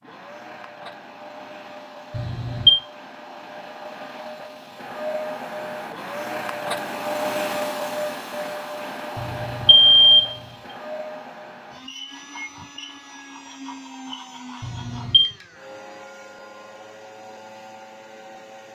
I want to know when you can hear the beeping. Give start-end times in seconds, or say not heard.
2.1-2.8, 9.2-10.3, 14.6-15.3.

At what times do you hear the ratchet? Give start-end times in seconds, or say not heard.
not heard.